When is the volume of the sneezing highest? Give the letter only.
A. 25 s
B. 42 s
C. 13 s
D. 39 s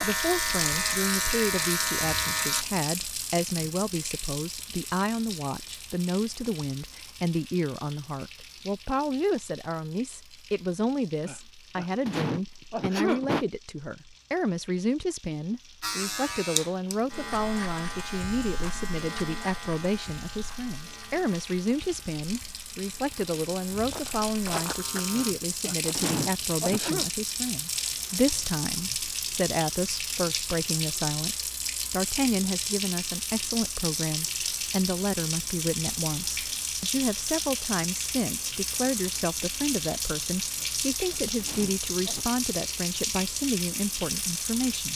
C.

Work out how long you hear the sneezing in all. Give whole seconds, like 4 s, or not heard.
6 s.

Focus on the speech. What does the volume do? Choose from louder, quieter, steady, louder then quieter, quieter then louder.
steady.